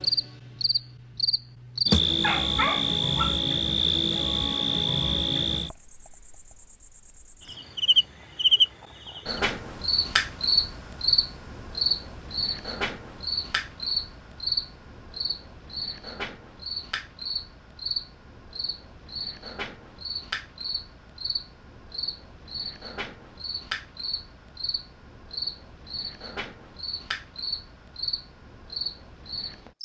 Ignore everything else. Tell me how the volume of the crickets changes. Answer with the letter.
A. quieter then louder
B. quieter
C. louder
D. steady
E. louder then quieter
B.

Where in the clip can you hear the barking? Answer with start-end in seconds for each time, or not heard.
2.2-3.4.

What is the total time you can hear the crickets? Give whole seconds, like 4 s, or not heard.
30 s.